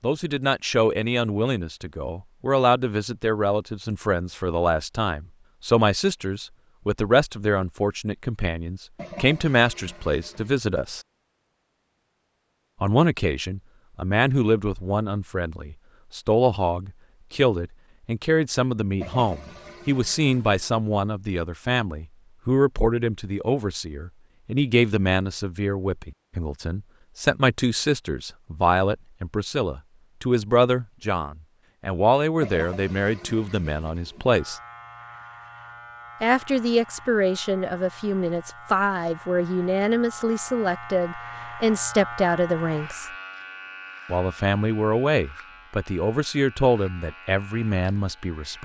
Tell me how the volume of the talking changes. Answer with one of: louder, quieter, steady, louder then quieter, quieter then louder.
steady.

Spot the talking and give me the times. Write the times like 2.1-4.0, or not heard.
0.0-11.0, 12.8-34.6, 36.2-43.0, 44.0-48.6.